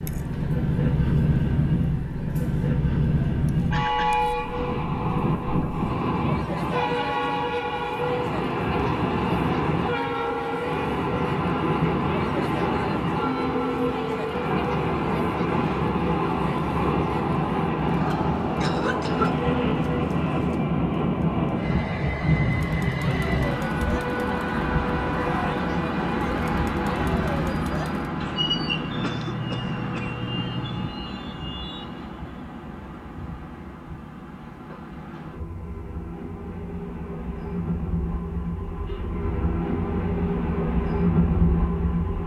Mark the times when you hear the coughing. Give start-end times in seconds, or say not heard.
3.7-4.2, 18.0-19.4, 28.9-30.9.